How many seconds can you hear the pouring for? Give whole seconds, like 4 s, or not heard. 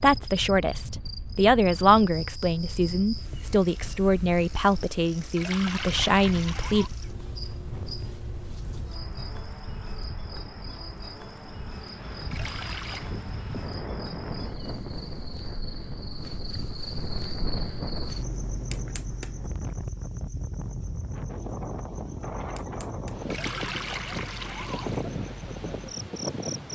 4 s.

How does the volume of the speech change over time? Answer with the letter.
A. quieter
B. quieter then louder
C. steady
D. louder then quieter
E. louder
C.